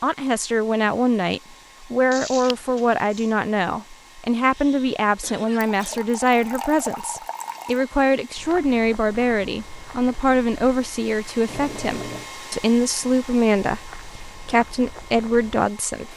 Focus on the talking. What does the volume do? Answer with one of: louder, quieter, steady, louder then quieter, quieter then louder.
steady.